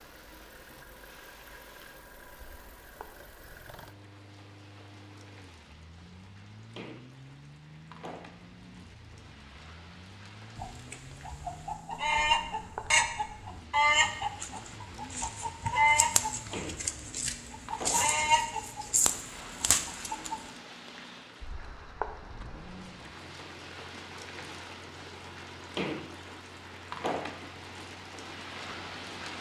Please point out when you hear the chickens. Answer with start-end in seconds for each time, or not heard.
10.6-20.4.